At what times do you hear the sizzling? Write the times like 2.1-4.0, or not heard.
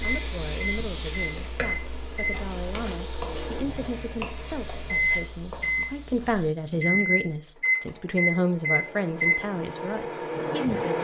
0.0-6.5.